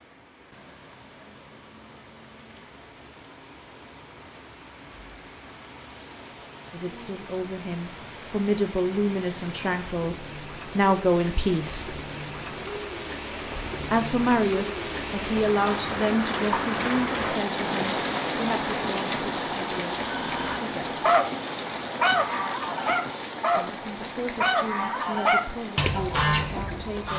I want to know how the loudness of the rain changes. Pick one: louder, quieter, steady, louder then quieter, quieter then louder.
louder then quieter.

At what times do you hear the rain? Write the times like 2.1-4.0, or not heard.
0.0-27.1.